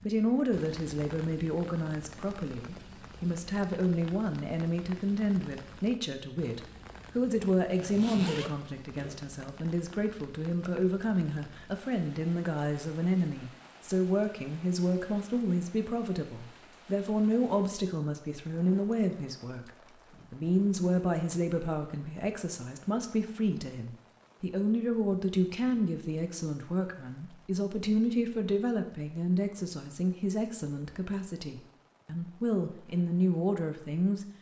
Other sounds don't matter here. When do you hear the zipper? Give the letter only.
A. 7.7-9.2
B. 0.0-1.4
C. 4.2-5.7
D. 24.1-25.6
A.